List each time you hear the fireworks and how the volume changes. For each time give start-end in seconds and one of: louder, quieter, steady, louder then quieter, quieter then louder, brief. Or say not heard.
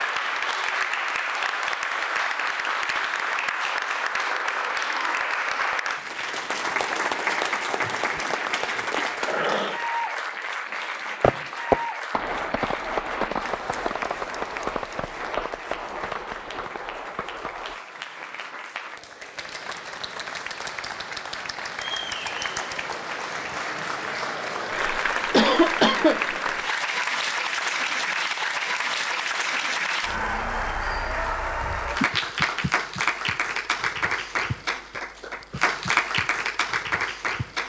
11.2-17.8 quieter.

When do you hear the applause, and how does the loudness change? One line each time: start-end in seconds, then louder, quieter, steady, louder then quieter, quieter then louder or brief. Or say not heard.
0.0-37.6 quieter then louder.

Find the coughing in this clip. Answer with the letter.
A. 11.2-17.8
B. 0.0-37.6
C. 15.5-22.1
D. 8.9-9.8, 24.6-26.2
D.